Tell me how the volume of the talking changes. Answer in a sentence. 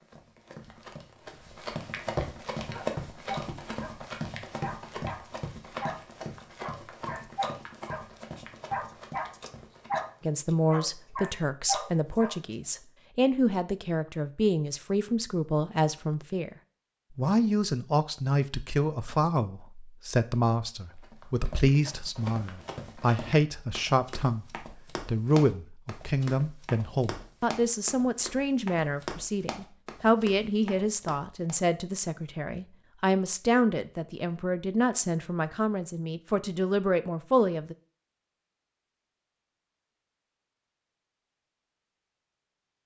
The volume of the talking stays about the same.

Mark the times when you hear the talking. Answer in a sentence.
You can hear the talking from 10.2 to 16.6 s and from 17.1 to 37.8 s.